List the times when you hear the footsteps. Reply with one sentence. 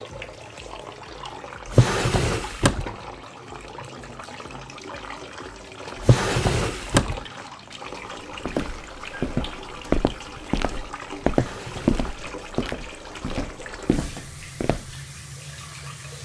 You can hear the footsteps from 8.4 to 14.9 s.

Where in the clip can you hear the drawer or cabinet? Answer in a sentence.
The drawer or cabinet can be heard from 1.6 to 2.9 s, from 6.0 to 7.2 s and from 11.3 to 12.3 s.